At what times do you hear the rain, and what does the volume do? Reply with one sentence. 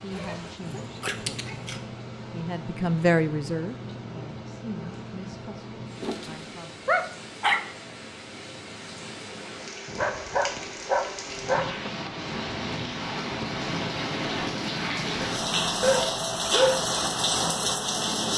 The rain can be heard from 0.0 to 18.3 s, getting louder.